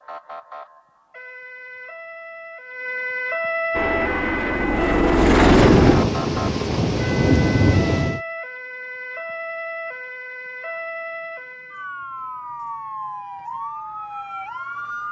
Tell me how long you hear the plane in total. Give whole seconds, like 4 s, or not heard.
2 s.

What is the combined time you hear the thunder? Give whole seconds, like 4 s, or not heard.
3 s.